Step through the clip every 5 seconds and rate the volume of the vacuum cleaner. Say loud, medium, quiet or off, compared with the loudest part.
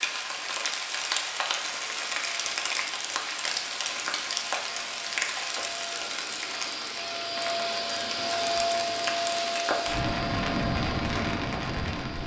quiet, loud, medium.